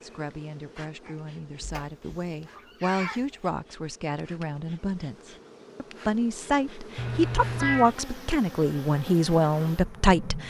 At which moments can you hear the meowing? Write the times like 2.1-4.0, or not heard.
1.6-3.4, 7.0-8.0.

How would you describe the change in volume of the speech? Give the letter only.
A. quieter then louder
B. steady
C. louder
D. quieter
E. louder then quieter
C.